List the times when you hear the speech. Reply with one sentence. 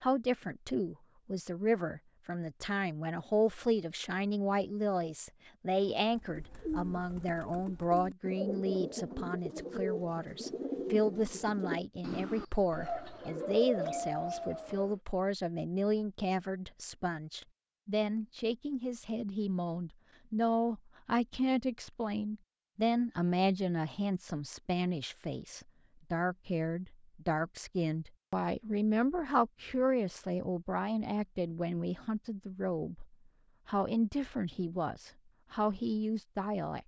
The speech can be heard from 0.0 to 33.0 s and from 33.6 to 36.8 s.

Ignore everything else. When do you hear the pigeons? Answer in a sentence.
The pigeons can be heard from 6.1 to 14.9 s.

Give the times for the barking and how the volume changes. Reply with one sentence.
The barking can't be heard in this clip.